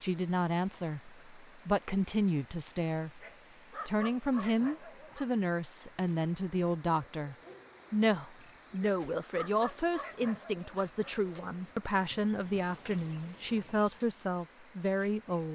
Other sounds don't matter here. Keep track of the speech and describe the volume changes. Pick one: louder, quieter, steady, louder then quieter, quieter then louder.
steady.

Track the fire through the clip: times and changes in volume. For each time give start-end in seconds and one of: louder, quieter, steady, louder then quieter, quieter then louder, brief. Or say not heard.
not heard.